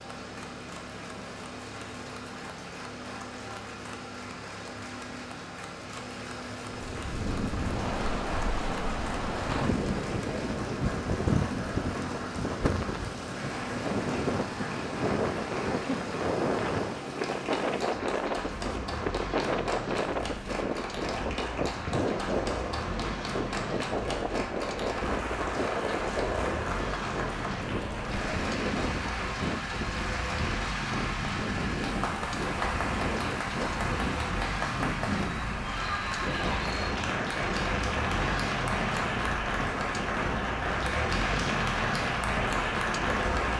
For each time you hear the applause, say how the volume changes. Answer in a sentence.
The applause can be heard from 0.0 to 43.5 s, getting louder.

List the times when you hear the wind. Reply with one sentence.
You can hear the wind from 6.7 to 43.5 s.